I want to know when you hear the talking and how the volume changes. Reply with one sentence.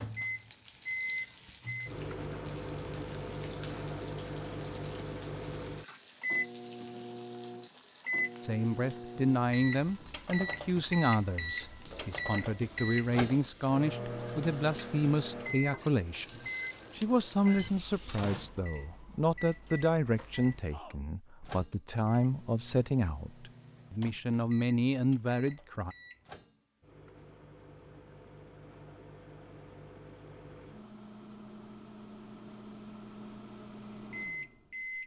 You can hear the talking from 8.4 to 25.9 s, at a steady volume.